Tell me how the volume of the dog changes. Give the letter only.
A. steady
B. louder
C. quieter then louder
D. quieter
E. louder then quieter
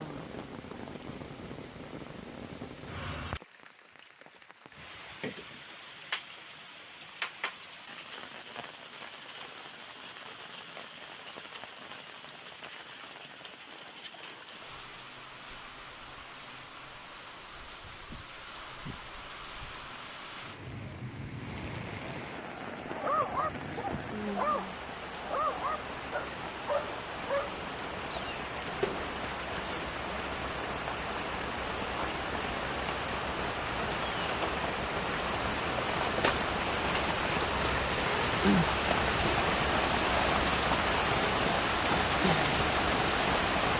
A.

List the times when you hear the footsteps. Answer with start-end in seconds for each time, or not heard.
not heard.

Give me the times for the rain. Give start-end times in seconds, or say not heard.
0.0-43.7.